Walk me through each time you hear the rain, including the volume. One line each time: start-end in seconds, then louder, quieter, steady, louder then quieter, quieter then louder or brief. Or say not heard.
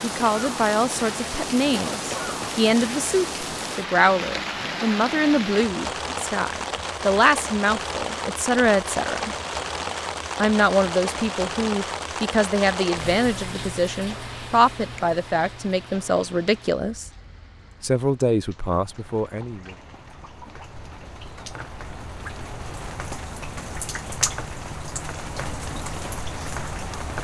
0.0-27.2 quieter then louder.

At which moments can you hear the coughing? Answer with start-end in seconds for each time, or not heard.
1.7-2.5.